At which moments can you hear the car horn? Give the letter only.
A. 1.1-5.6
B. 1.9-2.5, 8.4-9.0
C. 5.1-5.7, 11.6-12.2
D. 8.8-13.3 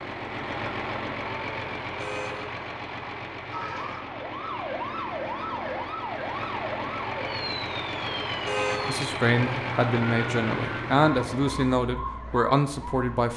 B.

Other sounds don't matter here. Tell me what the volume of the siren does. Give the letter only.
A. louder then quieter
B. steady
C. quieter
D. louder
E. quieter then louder
B.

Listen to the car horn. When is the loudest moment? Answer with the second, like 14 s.
9 s.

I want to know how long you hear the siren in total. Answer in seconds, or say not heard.
10 s.